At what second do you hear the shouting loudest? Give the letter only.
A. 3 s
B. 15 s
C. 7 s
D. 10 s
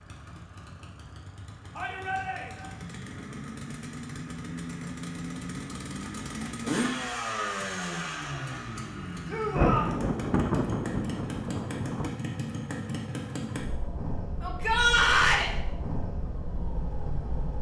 B.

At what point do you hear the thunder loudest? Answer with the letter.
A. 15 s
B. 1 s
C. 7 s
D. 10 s
D.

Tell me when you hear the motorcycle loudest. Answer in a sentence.
The volume of the motorcycle peaks at 7 seconds.